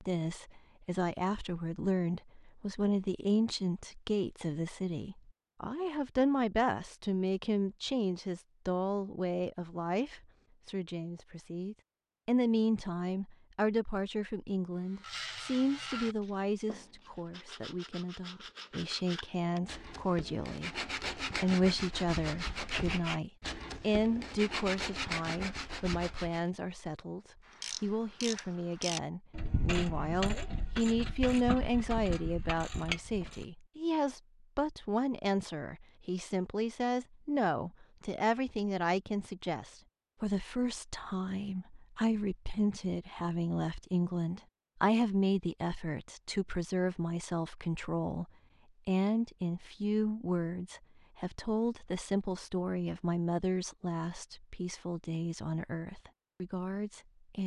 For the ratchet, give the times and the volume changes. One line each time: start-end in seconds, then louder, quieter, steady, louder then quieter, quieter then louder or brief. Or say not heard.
27.5-33.5 steady.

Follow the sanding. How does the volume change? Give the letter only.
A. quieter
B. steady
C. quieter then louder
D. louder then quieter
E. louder
E.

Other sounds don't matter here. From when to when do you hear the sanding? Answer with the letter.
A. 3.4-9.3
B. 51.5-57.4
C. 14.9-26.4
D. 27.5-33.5
C.